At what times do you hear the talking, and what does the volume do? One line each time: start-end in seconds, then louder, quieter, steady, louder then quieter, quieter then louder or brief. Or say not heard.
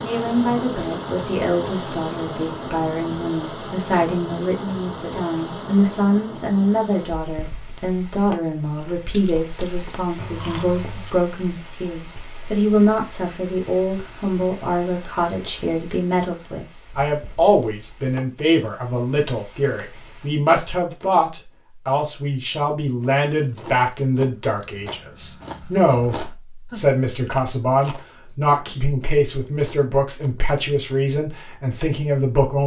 0.0-32.6 steady.